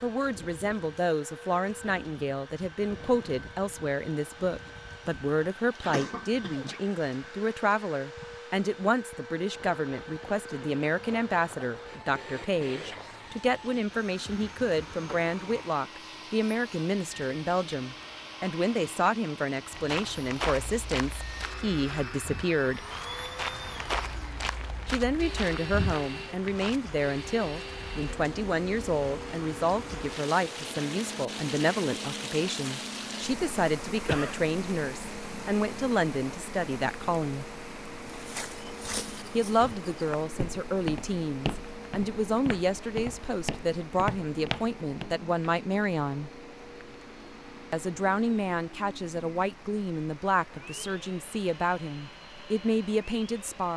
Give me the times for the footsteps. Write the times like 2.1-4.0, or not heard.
19.7-26.8, 38.0-45.1.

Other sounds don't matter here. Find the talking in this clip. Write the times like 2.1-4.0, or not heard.
0.0-22.8, 24.9-37.5, 39.4-46.3, 47.7-53.7.